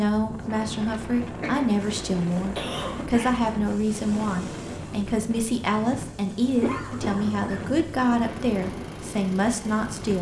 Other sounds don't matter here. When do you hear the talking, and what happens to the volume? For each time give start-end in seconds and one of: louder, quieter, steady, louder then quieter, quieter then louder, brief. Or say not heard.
0.0-10.1 steady.